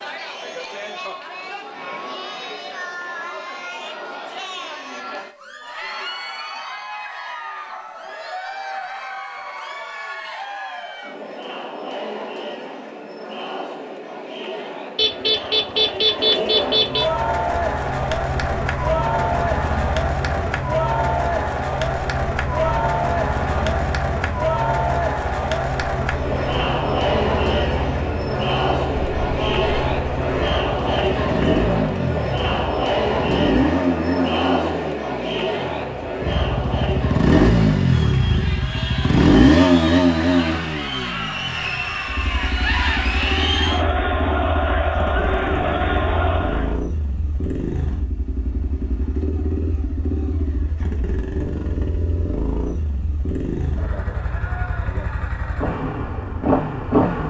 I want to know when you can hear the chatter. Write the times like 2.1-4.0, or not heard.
0.0-46.8.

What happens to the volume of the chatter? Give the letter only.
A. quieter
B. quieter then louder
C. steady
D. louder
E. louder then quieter
D.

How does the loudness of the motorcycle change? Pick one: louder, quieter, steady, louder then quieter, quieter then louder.
louder then quieter.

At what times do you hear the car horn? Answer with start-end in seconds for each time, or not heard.
14.9-17.1, 29.2-29.8.